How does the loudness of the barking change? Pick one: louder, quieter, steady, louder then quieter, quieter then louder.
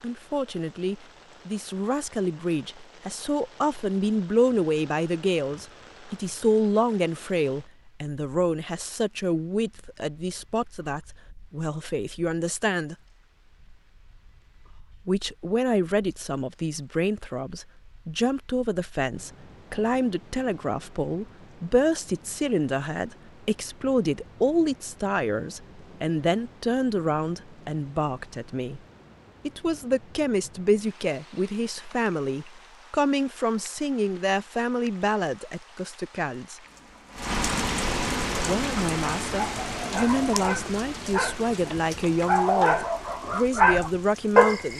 louder.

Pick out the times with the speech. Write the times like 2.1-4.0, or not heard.
0.0-12.9, 15.1-28.8, 29.4-36.6, 38.4-44.7.